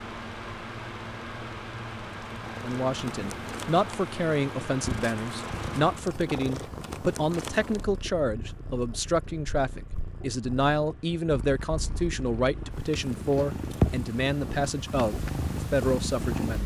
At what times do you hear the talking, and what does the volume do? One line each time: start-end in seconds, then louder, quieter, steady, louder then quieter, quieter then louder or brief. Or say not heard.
2.6-16.6 steady.